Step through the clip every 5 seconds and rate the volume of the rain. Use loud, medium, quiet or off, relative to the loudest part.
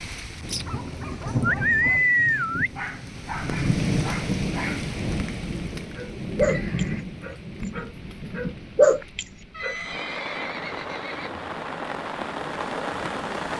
loud, medium, medium.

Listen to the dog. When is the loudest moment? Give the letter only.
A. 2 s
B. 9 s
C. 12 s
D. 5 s
B.